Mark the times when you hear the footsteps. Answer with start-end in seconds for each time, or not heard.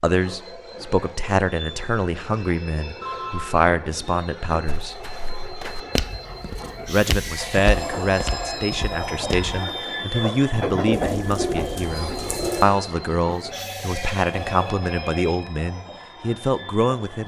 4.7-9.6.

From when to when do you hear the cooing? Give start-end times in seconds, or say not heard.
10.9-12.7.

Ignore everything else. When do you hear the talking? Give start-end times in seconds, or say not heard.
0.0-5.0, 6.8-17.2.